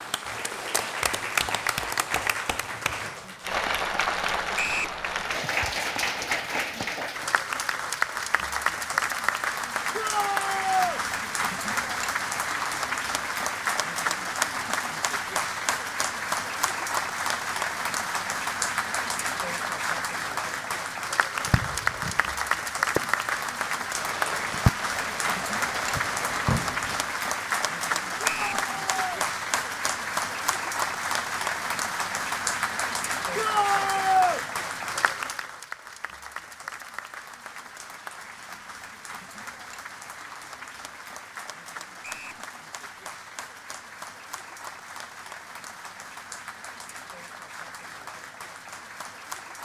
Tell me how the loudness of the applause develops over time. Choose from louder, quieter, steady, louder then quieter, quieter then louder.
quieter.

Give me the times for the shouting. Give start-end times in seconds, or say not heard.
9.9-11.0, 28.2-29.2, 33.4-34.4.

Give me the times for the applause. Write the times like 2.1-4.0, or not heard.
0.0-49.6.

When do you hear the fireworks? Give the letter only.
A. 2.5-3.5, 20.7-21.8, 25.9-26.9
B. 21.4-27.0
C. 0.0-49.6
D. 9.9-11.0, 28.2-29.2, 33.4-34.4
B.